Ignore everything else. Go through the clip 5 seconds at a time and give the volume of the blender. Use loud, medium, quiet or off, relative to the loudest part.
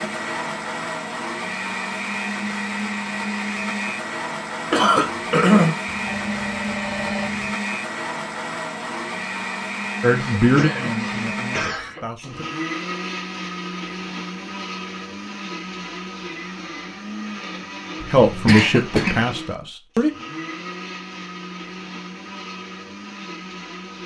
loud, loud, loud, medium, medium.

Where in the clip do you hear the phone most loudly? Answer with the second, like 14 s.
7 s.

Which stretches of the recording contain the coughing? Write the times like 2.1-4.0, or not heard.
4.7-5.8, 10.2-12.1, 18.2-19.2.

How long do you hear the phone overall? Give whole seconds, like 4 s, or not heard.
2 s.